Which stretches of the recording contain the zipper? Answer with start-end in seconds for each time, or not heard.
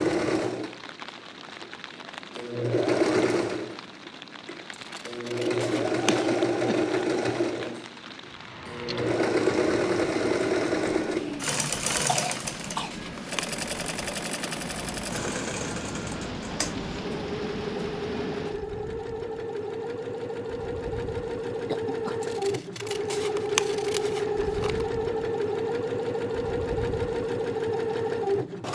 not heard.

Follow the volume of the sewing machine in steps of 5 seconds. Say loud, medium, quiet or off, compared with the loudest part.
loud, loud, loud, medium, loud, loud.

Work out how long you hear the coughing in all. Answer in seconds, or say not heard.
3 s.